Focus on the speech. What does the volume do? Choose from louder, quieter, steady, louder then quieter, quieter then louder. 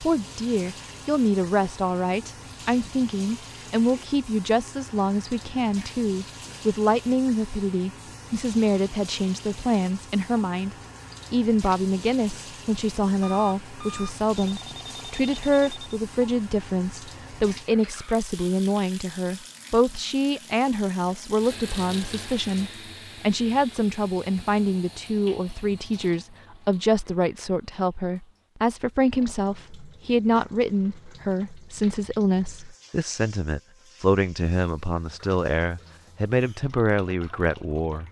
steady.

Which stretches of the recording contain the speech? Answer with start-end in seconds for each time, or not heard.
0.0-38.0.